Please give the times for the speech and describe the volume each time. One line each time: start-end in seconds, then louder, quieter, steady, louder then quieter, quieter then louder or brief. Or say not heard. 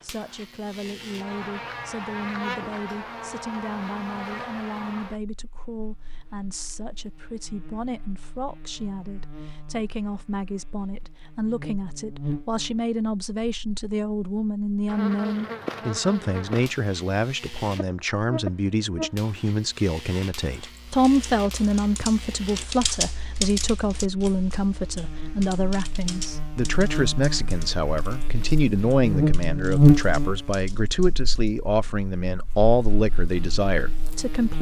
0.0-34.5 louder.